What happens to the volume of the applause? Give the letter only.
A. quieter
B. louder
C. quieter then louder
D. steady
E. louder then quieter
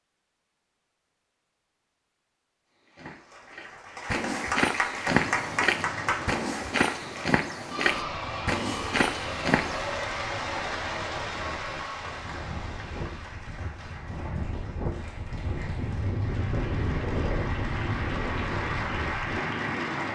C.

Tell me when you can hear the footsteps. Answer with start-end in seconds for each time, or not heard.
2.8-9.8.